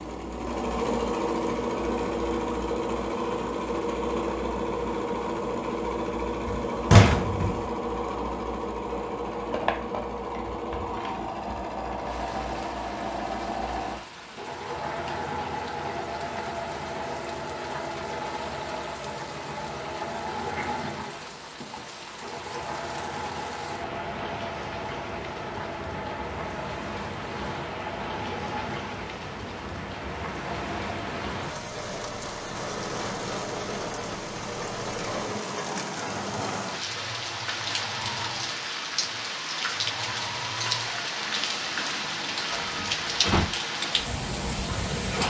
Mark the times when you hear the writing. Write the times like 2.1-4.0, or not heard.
not heard.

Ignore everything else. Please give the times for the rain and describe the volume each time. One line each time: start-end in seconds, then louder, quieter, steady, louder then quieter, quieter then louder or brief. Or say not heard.
12.0-45.2 louder.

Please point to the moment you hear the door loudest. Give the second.
7 s.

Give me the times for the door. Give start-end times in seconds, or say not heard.
6.5-7.7, 42.5-43.5.